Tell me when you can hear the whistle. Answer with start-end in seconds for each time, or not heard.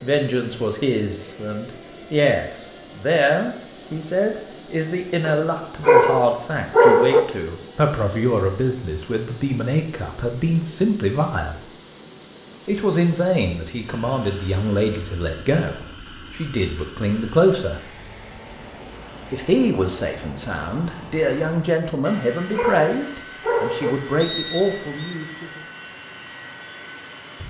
24.2-25.1.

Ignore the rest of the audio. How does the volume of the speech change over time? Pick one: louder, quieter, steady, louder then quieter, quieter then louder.
steady.